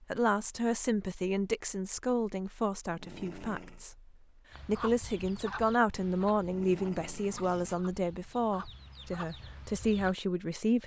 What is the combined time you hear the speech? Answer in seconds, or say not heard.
11 s.